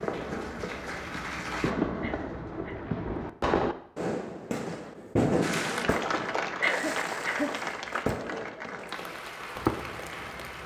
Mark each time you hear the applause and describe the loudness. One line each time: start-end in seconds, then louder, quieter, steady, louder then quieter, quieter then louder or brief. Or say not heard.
0.0-1.8 brief
5.4-10.6 quieter.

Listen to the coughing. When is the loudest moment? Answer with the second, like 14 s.
7 s.